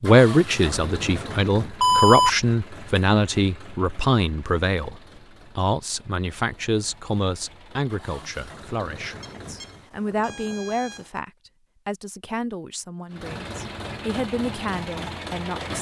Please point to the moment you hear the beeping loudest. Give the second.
2 s.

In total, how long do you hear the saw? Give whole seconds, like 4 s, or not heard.
not heard.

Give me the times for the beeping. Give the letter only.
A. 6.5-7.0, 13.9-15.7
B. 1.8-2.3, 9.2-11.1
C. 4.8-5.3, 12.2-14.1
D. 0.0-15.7
B.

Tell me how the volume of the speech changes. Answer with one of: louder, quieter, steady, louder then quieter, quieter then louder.
quieter.